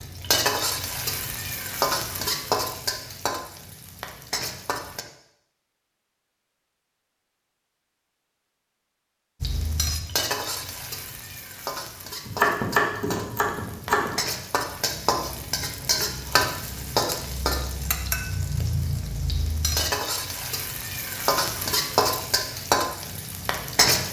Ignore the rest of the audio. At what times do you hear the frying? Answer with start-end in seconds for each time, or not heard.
0.0-5.0, 9.4-24.0.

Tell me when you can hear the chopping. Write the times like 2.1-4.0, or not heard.
12.2-14.1.